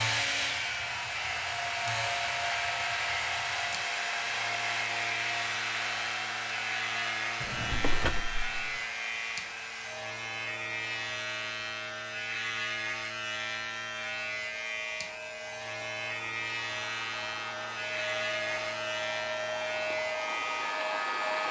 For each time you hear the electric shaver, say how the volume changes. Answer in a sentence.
You can hear the electric shaver from 0.0 to 21.4 s, at a steady volume.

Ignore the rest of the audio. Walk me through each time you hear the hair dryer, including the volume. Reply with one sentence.
The hair dryer can be heard from 0.0 to 21.4 s, getting quieter then louder.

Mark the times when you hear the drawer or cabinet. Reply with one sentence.
You can hear the drawer or cabinet from 7.4 to 8.8 s.